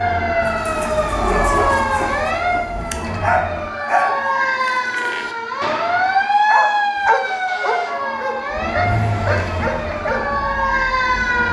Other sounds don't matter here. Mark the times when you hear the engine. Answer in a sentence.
The engine can be heard from 0.0 to 3.7 s and from 8.5 to 11.4 s.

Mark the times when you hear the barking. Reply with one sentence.
The barking can be heard from 0.5 to 10.3 s.